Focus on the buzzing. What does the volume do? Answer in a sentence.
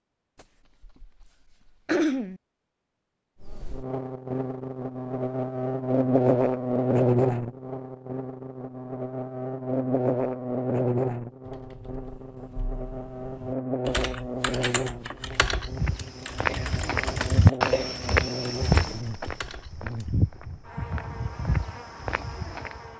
The volume of the buzzing goes down.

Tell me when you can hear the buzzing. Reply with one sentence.
The buzzing can be heard from 3.4 to 22.9 s.